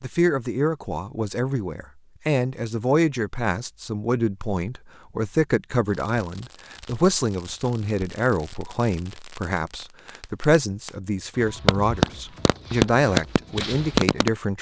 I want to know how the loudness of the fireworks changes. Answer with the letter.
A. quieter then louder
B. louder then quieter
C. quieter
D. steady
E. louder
E.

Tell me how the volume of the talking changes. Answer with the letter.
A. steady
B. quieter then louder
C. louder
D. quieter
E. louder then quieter
A.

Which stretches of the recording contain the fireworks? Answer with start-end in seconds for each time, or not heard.
5.8-14.3.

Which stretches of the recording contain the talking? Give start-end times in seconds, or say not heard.
0.0-14.5.